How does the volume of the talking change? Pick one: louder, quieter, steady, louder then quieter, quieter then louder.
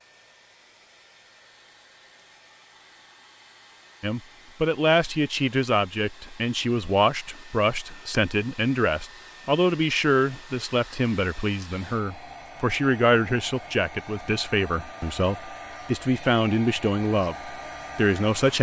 steady.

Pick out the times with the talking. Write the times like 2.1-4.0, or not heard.
4.0-18.5.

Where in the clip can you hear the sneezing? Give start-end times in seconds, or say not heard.
not heard.